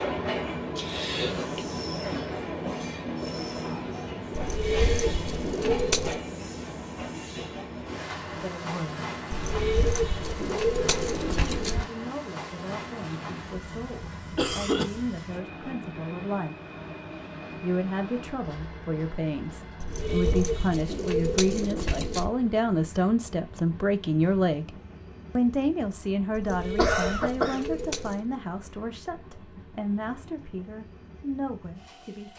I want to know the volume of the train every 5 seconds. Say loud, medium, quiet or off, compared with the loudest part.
loud, loud, medium, medium, quiet, quiet, quiet.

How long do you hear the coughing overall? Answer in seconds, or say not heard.
3 s.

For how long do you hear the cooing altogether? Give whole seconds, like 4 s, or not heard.
9 s.